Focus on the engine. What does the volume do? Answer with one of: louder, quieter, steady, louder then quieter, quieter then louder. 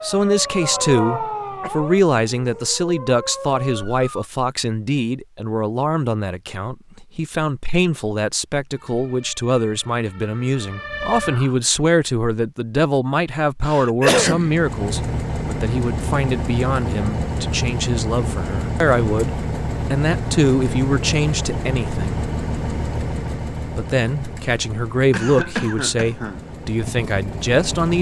quieter.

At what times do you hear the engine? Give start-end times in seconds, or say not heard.
14.3-27.9.